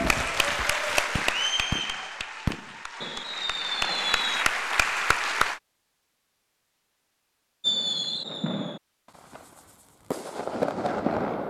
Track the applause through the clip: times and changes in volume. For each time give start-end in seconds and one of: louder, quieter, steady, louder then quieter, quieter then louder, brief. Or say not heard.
0.0-5.6 quieter then louder.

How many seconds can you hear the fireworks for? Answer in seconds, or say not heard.
8 s.